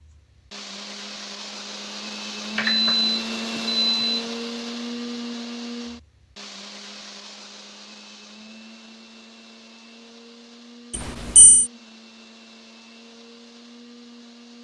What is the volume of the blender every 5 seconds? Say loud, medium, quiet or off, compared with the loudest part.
loud, medium, quiet.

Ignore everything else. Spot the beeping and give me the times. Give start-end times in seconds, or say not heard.
2.5-4.2, 10.9-11.7.